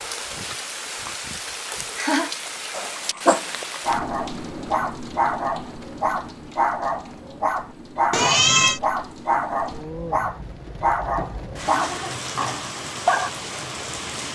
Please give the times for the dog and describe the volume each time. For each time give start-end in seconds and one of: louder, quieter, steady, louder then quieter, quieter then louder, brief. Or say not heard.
2.7-13.3 steady.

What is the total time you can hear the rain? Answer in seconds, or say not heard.
14 s.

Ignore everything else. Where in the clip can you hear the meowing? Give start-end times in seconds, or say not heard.
8.1-8.8.